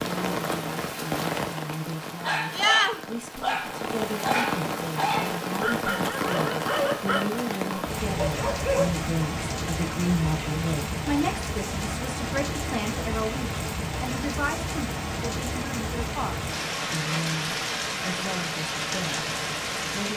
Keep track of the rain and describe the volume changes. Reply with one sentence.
The volume of the rain stays about the same.